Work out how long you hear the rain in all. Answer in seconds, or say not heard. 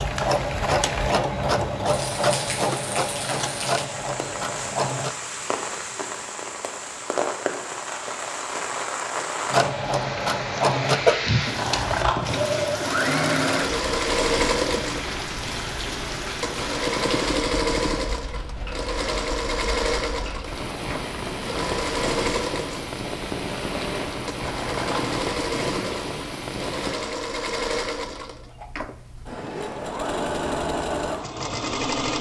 27 s.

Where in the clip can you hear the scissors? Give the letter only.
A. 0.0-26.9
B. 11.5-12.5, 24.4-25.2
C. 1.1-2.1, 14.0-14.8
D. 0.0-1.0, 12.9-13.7
B.